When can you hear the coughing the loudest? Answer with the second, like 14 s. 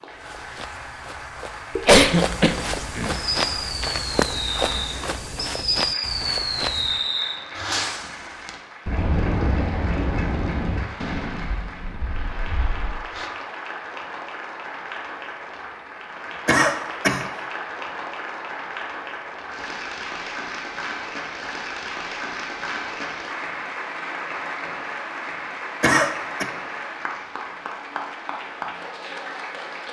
2 s.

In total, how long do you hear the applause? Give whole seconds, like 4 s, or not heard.
30 s.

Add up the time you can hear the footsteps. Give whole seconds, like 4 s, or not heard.
7 s.